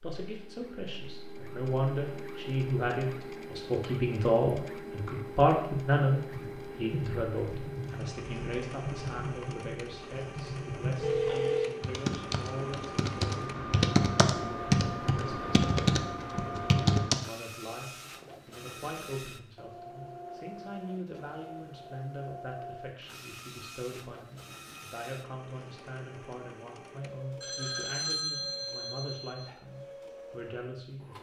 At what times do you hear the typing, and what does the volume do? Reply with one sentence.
You can hear the typing from 6.3 to 17.2 s, getting louder.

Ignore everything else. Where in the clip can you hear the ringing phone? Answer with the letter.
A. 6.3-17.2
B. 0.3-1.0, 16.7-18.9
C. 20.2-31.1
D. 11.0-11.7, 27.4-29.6
D.